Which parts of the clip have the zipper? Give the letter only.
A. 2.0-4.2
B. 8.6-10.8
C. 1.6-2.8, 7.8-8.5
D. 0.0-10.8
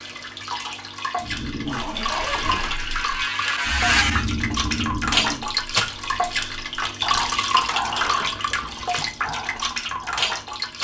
C.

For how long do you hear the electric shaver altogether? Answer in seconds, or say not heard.
2 s.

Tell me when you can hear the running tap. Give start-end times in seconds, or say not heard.
0.0-10.8.